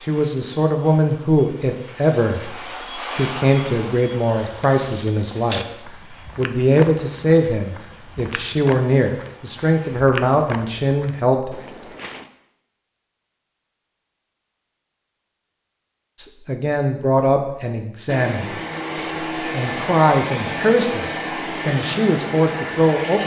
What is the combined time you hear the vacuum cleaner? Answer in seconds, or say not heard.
15 s.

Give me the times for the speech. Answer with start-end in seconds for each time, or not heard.
0.0-11.6, 16.1-23.2.